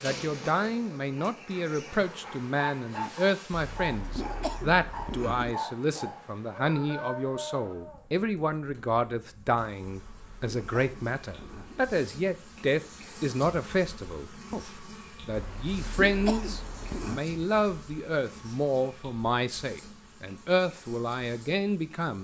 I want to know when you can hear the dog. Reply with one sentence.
You can hear the dog from 1.1 to 8.0 s.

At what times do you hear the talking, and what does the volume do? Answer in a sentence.
The talking can be heard from 0.0 to 22.1 s, at a steady volume.